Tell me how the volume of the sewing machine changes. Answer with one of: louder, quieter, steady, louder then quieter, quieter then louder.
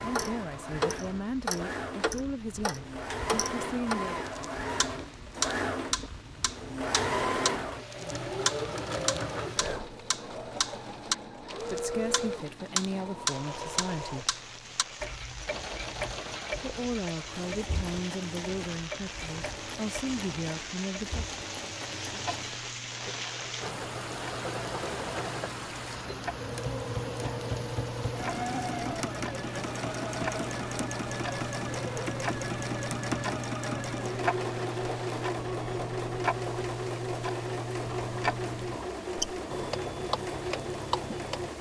quieter then louder.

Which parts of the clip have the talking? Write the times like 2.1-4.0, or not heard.
0.0-4.2, 11.6-14.3, 16.6-21.2.